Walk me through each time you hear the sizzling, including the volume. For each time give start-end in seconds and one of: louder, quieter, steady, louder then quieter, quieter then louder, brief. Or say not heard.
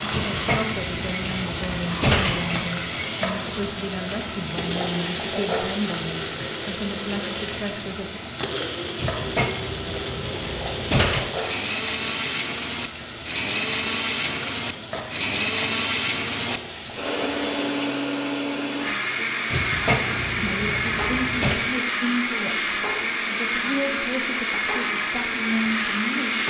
0.0-26.4 quieter.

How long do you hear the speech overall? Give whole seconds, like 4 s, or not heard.
14 s.